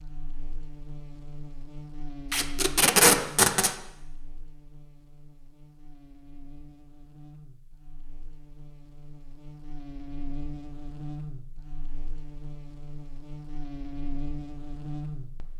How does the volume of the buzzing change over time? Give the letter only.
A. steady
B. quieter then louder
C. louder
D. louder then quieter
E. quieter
B.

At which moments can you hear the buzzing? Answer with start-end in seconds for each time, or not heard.
0.0-15.5.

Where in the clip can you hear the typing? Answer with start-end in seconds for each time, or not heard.
not heard.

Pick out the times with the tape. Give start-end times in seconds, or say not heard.
2.3-3.8.